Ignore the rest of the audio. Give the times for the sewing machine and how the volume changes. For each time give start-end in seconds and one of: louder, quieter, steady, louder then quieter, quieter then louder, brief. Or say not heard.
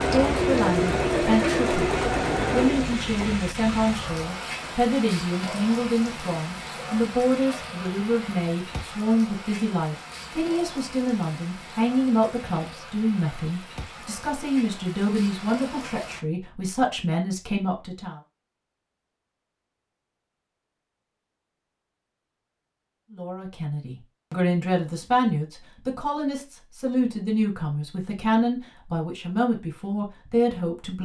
0.0-4.2 quieter.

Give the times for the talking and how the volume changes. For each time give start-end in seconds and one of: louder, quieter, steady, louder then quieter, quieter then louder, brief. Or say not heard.
0.0-18.2 steady
23.1-31.0 steady.